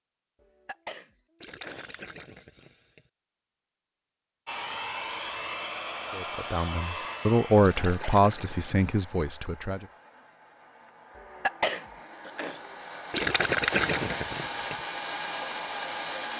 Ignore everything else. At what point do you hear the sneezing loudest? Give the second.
12 s.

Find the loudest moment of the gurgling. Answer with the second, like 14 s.
14 s.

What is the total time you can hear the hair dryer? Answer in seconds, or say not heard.
12 s.